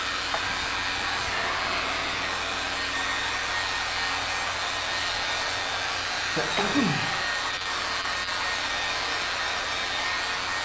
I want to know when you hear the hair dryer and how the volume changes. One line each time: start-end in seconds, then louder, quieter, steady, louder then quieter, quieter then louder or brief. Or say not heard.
0.0-10.6 steady.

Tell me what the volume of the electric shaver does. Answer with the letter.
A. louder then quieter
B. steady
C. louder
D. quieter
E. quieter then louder
B.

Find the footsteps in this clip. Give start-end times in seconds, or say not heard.
not heard.